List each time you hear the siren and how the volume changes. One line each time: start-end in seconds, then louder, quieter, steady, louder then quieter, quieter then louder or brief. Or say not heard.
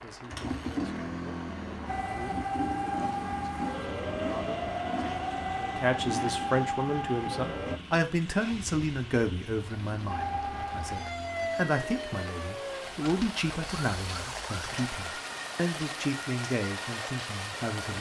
1.9-7.8 steady
10.1-17.9 quieter.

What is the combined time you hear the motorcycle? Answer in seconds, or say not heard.
13 s.